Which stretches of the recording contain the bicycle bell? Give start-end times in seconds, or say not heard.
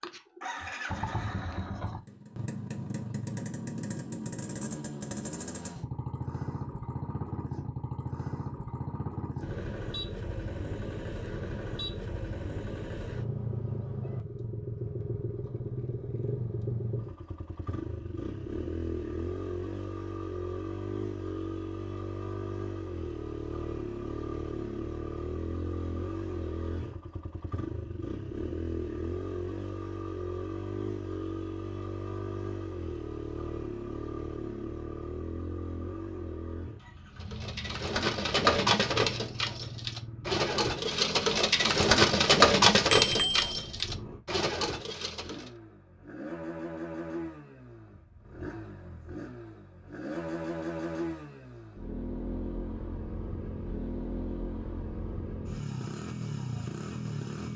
42.9-43.9.